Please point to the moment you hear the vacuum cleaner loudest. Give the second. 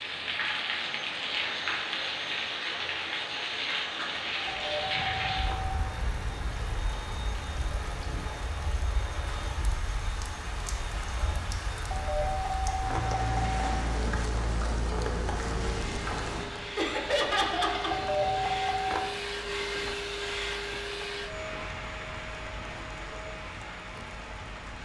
20 s.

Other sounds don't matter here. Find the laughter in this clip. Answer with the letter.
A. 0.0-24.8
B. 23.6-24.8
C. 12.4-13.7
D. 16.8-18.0
D.